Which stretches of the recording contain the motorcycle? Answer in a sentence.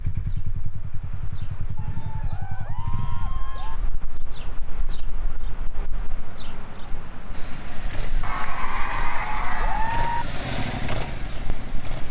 The motorcycle can be heard from 0.0 to 3.4 s and from 7.3 to 12.0 s.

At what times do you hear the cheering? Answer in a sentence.
You can hear the cheering from 1.8 to 3.8 s and from 8.2 to 10.2 s.